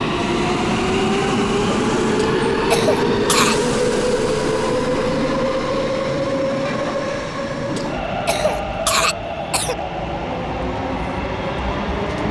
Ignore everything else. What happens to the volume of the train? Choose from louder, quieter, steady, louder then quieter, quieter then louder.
quieter.